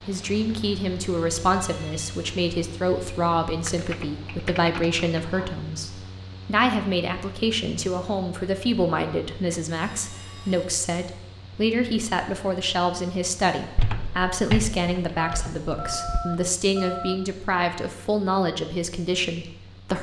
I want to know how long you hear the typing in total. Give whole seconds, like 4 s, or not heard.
4 s.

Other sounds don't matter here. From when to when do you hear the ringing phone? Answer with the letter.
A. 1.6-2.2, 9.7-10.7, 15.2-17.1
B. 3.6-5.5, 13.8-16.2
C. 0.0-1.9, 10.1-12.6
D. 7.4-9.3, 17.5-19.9
A.